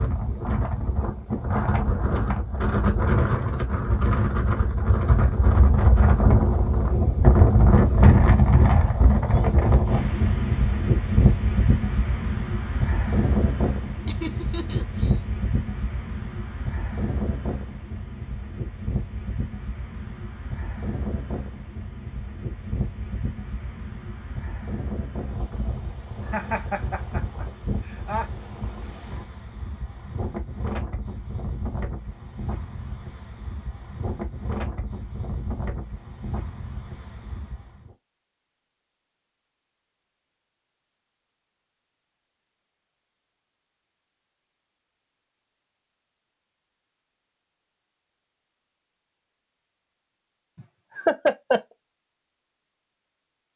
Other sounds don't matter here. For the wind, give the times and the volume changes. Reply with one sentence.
The wind can be heard from 0.0 to 38.0 s, getting quieter.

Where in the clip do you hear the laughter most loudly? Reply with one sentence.
The loudest moment of the laughter is at 51 seconds.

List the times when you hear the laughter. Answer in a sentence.
You can hear the laughter from 14.1 to 15.2 s, from 26.2 to 28.2 s and from 50.9 to 51.6 s.